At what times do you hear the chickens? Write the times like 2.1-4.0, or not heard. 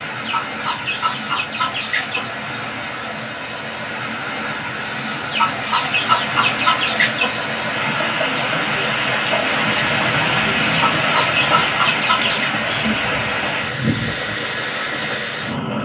0.2-2.4, 5.3-7.4, 10.7-12.5.